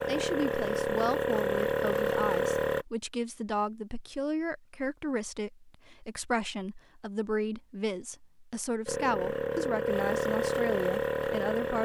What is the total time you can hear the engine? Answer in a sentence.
You can hear the engine for 6 seconds altogether.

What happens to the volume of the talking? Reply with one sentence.
The volume of the talking stays about the same.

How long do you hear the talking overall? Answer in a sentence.
The talking can be heard for 12 seconds in total.